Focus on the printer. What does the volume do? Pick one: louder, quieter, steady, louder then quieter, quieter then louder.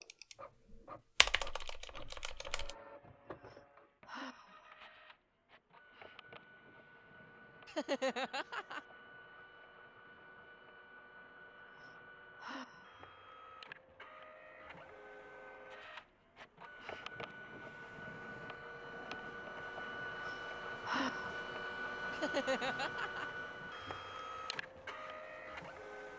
louder.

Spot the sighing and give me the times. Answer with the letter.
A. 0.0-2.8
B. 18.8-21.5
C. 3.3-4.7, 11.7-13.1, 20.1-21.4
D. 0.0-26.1
C.